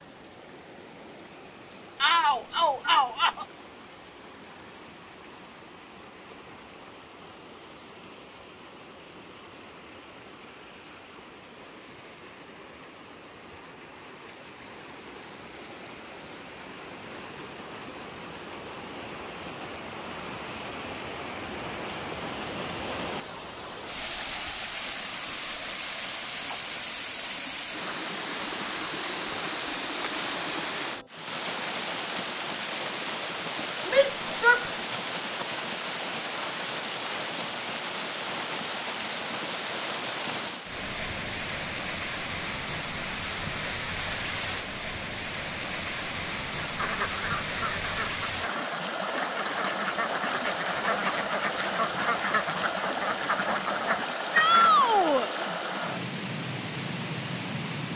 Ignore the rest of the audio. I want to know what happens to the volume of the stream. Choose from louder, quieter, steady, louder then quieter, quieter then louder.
louder.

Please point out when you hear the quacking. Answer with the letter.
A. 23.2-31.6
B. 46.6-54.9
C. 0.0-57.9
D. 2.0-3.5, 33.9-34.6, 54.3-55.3
B.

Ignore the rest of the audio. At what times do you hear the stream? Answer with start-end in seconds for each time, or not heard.
0.0-57.9.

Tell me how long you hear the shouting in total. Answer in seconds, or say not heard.
3 s.